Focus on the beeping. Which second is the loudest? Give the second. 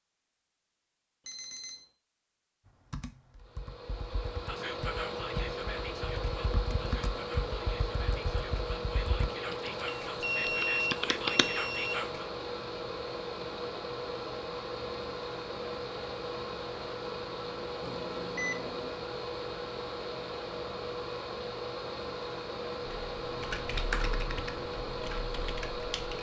11 s.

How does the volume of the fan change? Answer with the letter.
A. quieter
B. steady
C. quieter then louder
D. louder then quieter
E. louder
B.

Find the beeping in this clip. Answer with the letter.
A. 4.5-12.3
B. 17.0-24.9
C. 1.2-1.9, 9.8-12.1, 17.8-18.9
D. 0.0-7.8
C.